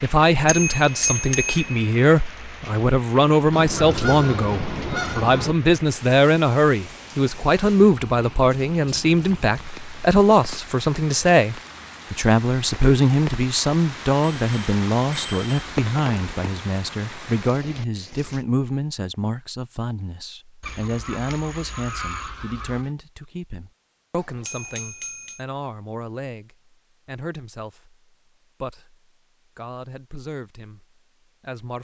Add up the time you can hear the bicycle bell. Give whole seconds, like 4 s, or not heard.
4 s.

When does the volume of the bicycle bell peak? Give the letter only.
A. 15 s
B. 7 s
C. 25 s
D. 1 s
D.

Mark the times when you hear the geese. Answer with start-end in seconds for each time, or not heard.
3.5-5.5, 20.6-22.9.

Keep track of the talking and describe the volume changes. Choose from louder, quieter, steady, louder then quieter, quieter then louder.
quieter.